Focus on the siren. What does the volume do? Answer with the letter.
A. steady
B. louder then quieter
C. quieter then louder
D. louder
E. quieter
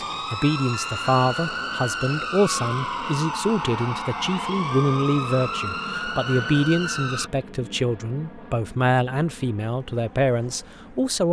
A.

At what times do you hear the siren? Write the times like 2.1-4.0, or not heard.
0.0-7.3.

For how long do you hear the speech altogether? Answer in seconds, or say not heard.
11 s.